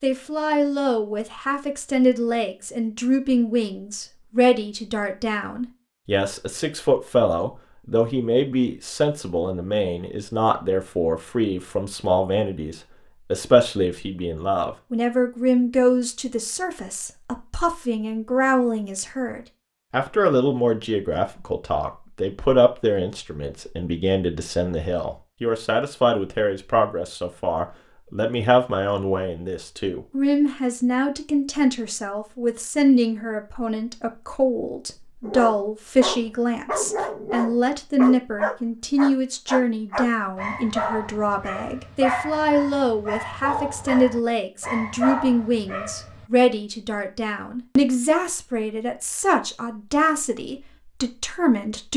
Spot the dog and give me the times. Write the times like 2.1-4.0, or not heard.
35.2-46.2.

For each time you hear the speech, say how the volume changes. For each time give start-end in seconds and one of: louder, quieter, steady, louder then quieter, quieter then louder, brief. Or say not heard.
0.0-51.9 steady.